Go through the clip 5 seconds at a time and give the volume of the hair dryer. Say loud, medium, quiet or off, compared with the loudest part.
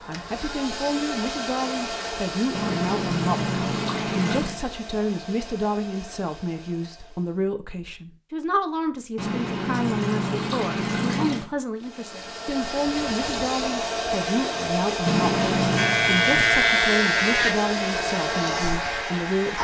medium, quiet, loud, loud.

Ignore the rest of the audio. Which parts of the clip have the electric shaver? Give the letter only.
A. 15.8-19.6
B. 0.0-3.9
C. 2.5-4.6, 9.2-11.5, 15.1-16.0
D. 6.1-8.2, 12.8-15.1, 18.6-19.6
A.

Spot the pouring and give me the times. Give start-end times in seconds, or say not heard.
2.5-4.6, 9.2-11.5, 15.1-16.0.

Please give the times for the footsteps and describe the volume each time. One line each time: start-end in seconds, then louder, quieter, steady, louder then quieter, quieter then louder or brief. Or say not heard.
not heard.